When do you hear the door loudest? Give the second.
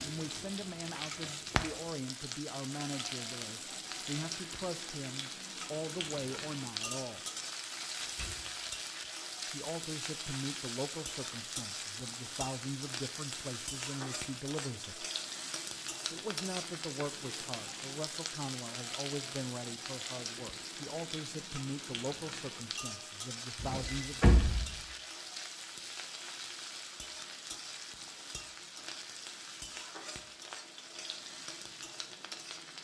24 s.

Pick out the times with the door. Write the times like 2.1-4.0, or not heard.
8.0-8.5, 23.6-24.8.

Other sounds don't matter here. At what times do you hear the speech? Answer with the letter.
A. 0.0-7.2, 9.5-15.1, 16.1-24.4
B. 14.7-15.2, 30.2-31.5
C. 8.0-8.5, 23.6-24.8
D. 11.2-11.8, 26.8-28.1
A.